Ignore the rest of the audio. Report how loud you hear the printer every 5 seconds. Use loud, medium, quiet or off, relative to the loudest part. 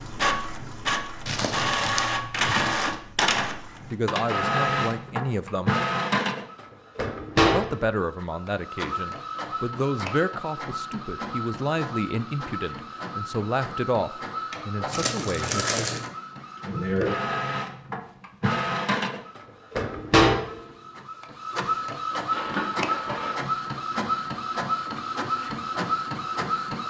loud, loud, medium, loud, loud, loud.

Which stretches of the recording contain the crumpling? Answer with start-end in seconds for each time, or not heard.
1.2-3.0, 14.9-16.1, 22.3-23.4.